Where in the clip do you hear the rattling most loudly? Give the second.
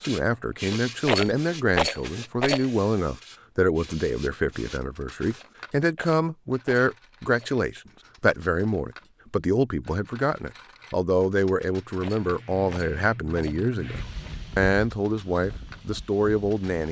2 s.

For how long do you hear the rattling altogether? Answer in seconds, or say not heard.
5 s.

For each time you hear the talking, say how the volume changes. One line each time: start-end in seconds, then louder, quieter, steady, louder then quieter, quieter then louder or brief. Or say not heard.
0.0-16.8 steady.